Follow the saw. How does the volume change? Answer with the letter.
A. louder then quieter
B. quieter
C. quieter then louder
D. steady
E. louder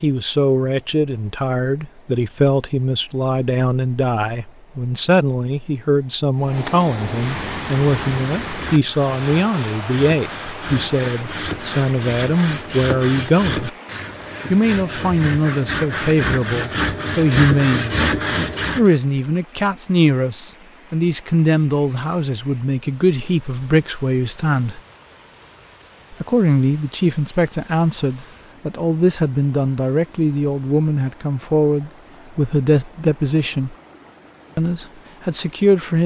E.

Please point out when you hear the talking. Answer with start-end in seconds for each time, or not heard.
0.0-13.7, 14.5-17.9, 18.8-24.8, 26.1-33.8, 34.5-36.0.